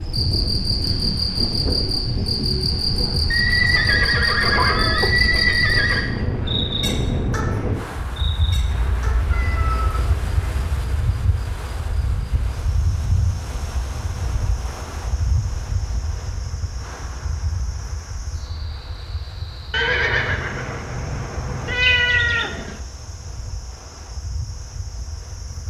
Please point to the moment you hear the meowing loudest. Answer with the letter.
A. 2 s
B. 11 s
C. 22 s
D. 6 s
C.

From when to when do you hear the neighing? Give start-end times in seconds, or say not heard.
3.3-6.0, 19.7-21.8.